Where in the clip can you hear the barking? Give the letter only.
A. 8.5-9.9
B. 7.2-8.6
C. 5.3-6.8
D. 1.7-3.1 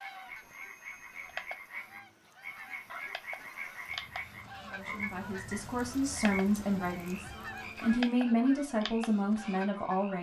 D.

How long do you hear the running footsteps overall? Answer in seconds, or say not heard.
not heard.